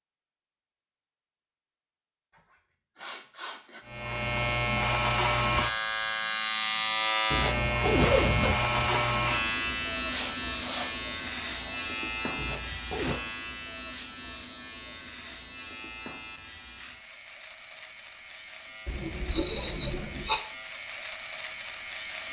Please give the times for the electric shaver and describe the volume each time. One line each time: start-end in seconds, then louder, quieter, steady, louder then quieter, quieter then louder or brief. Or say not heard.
3.9-22.2 quieter.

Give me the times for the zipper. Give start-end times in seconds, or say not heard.
7.3-9.1, 12.3-13.2.